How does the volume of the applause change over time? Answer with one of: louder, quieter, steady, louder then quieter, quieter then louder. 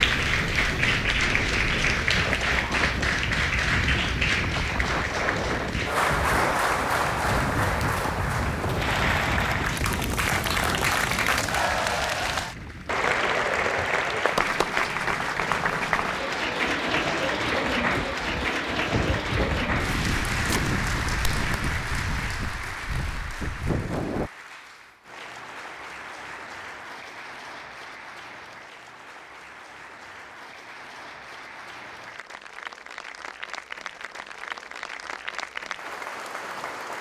quieter.